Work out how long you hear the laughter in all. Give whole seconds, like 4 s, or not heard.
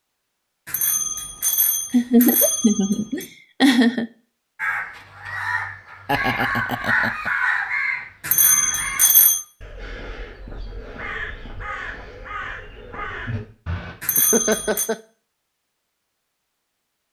4 s.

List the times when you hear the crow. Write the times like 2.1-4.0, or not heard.
4.5-13.9.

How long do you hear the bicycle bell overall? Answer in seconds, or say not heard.
5 s.